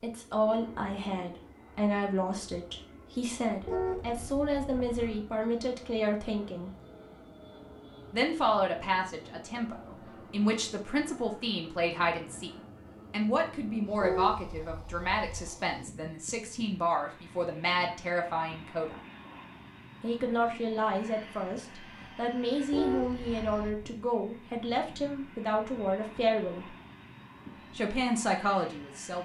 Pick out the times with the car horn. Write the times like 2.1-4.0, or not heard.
3.6-5.2, 14.0-15.5, 22.7-23.9.